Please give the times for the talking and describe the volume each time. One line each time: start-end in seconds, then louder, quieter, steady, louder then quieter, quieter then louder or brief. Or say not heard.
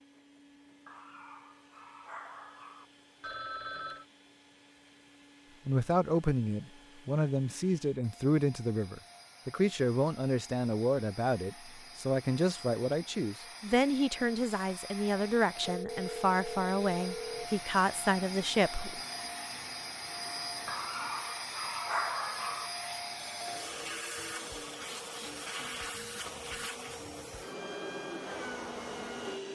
5.7-19.0 steady.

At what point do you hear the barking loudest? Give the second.
22 s.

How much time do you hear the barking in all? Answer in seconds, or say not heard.
4 s.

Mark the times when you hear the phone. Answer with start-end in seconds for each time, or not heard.
3.2-4.0, 15.7-17.5, 23.1-24.7.